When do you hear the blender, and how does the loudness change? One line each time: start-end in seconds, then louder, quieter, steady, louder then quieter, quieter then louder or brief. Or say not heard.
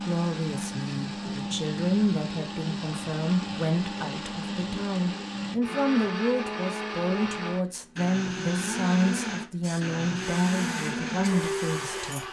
0.0-12.2 steady.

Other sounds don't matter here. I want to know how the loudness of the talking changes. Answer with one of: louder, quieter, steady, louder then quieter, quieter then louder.
steady.